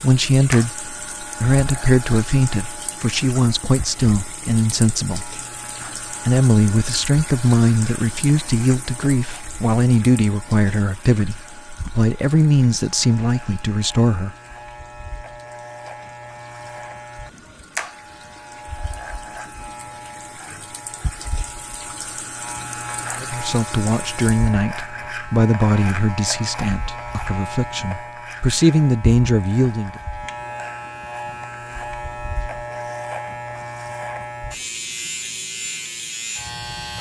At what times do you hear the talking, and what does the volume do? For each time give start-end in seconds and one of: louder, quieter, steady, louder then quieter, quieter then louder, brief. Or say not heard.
0.0-14.3 steady
23.2-30.0 quieter then louder.